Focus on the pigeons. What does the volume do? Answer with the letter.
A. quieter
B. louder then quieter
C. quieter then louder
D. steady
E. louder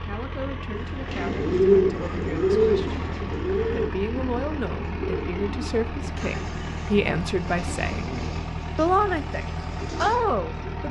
A.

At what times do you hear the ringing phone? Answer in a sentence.
The ringing phone can't be heard in this clip.